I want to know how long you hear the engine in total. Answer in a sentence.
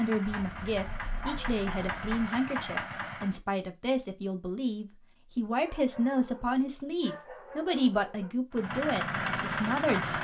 The engine can be heard for 5 seconds in total.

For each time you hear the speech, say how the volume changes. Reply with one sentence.
You can hear the speech from 0.0 to 10.1 s, at a steady volume.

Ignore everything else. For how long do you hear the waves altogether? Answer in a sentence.
The waves can't be heard in this clip.